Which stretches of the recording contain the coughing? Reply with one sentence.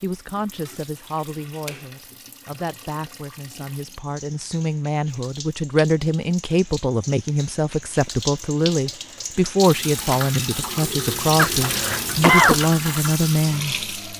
The coughing can be heard from 11.3 to 12.6 s.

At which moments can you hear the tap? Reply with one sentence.
You can hear the tap from 0.0 to 14.1 s.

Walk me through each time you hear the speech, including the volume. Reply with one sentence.
You can hear the speech from 0.0 to 13.8 s, getting louder.